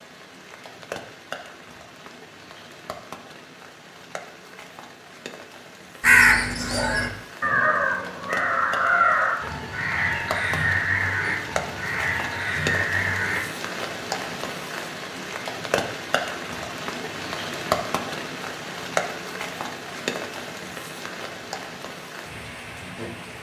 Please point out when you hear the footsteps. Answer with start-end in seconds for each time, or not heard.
not heard.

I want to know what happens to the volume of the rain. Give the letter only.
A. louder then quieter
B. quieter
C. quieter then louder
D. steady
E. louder
E.